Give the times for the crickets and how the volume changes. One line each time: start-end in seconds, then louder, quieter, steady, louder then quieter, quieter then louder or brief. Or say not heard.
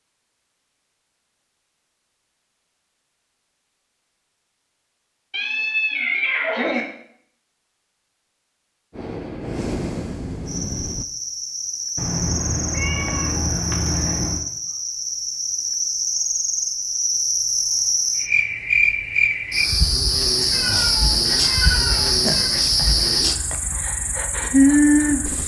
10.4-25.4 louder.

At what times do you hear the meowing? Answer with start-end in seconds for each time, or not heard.
5.3-6.8, 11.9-14.4, 20.5-22.6.